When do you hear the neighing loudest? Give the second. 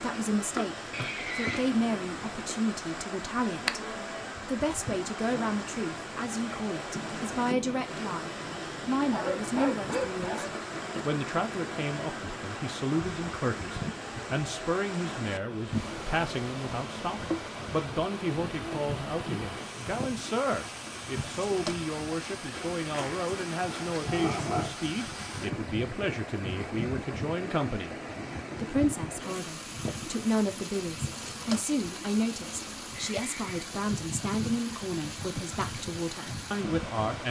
1 s.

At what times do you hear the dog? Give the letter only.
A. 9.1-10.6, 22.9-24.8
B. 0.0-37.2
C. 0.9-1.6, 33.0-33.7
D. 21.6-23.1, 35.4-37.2
A.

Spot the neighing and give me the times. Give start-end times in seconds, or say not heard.
0.9-1.6, 33.0-33.7.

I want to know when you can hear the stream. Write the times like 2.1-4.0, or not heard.
0.0-37.2.